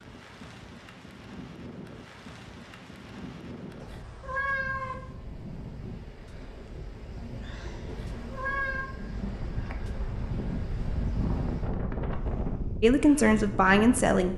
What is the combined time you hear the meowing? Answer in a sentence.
The meowing can be heard for 2 seconds in total.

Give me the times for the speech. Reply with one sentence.
The speech can be heard from 12.8 to 14.3 s.